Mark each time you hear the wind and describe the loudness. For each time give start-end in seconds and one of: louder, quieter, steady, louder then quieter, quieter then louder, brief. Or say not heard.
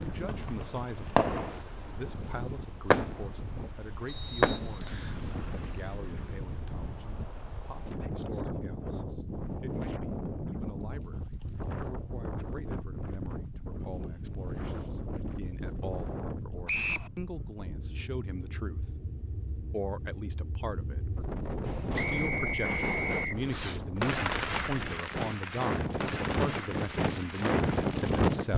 0.0-28.5 louder.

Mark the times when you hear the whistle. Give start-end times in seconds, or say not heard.
4.0-5.2, 16.6-17.1, 21.9-23.4.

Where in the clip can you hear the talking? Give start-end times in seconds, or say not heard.
0.1-18.9, 19.7-21.2, 21.9-28.5.